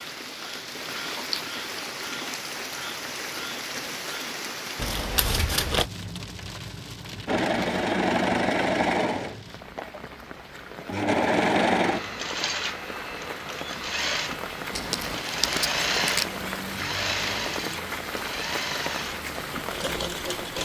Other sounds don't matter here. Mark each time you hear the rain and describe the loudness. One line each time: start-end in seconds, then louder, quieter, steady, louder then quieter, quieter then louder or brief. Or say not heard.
0.0-20.6 quieter then louder.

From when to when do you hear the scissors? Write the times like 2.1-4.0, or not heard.
4.8-5.9, 14.7-16.4.